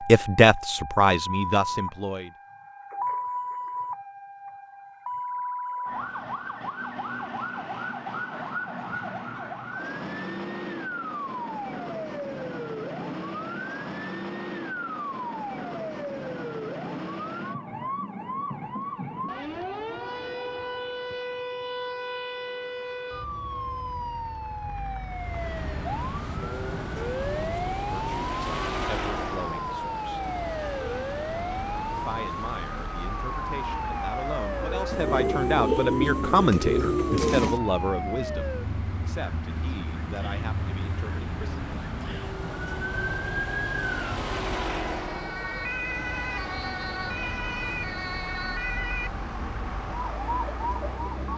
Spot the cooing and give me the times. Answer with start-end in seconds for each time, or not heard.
34.9-37.6.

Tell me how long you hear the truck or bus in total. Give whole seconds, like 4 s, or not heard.
26 s.